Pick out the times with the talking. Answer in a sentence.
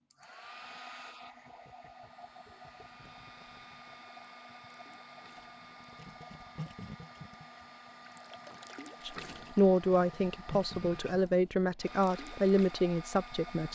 You can hear the talking from 9.1 to 13.6 s.